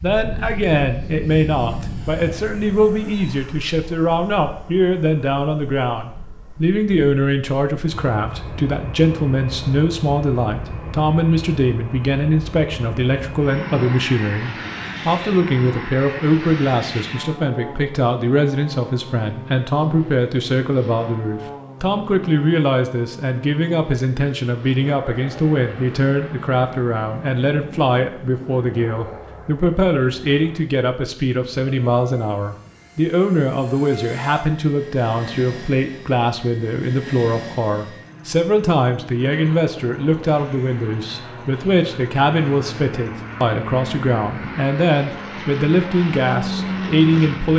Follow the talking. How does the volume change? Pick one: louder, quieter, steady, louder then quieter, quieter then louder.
steady.